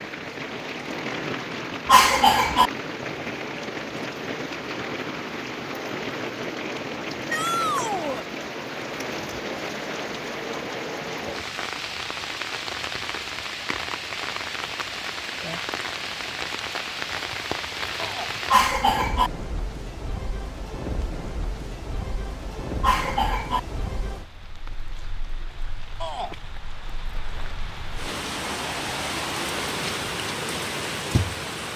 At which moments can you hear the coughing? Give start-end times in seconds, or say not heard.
1.9-2.7, 18.5-19.3, 22.8-23.6.